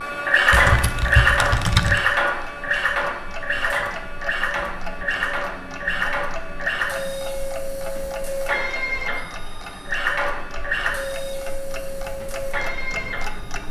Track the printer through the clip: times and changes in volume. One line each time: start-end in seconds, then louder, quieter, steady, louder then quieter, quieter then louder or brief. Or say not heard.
0.0-13.6 quieter.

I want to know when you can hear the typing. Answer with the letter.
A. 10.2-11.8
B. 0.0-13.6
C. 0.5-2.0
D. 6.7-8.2
C.